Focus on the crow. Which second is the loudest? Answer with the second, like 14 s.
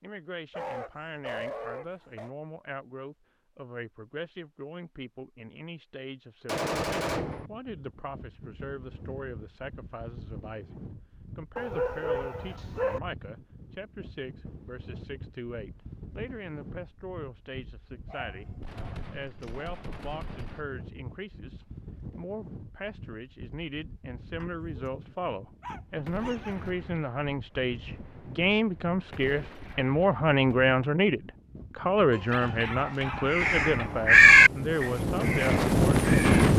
34 s.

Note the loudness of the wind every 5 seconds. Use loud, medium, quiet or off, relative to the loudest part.
off, quiet, quiet, quiet, quiet, quiet, quiet, loud.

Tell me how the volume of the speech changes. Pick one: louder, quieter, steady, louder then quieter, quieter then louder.
louder.